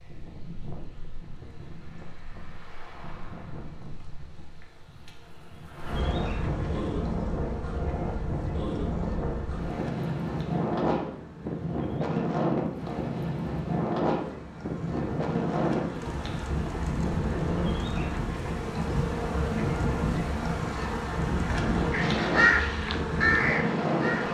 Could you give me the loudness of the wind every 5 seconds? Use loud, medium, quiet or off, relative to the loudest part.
quiet, loud, loud, loud, loud.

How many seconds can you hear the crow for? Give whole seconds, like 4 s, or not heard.
2 s.